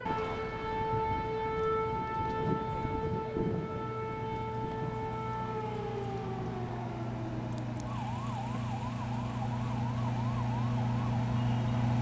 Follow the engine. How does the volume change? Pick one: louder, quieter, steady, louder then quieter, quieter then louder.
louder.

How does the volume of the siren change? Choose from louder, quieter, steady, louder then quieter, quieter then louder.
quieter.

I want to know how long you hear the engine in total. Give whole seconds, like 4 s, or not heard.
12 s.